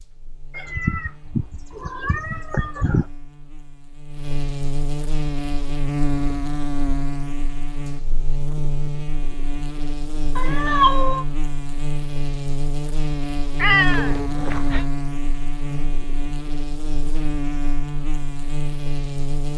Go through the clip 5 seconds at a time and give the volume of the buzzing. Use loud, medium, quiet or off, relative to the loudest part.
medium, loud, loud, loud.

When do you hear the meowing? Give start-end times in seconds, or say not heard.
0.6-3.0, 10.3-11.2, 13.6-14.8.